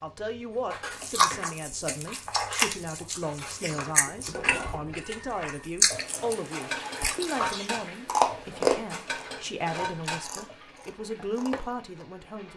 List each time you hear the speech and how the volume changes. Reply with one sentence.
The speech can be heard from 0.0 to 12.5 s, at a steady volume.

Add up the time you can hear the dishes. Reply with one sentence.
You can hear the dishes for 10 seconds altogether.